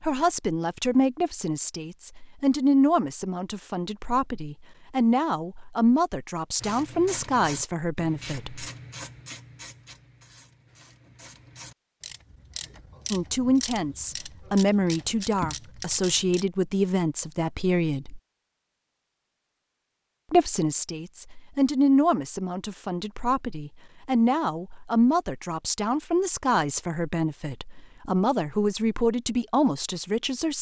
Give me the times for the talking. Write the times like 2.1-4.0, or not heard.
0.0-8.7, 13.1-18.2, 20.3-30.5.